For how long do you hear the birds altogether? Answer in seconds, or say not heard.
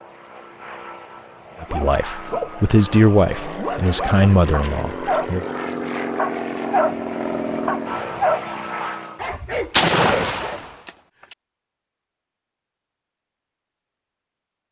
not heard.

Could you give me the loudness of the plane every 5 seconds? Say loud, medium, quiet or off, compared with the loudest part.
medium, loud, off.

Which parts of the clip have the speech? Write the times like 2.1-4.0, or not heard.
1.6-5.5.